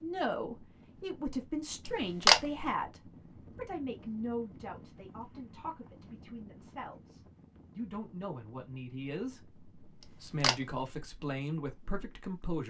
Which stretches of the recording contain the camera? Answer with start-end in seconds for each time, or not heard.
1.9-2.6, 10.1-10.8.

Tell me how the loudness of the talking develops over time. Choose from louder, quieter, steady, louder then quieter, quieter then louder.
quieter then louder.